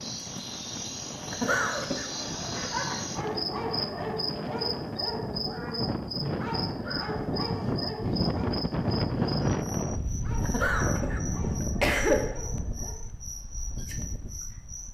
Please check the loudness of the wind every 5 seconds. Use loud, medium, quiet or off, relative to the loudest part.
medium, loud, medium.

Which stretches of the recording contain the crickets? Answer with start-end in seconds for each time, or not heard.
0.0-14.8.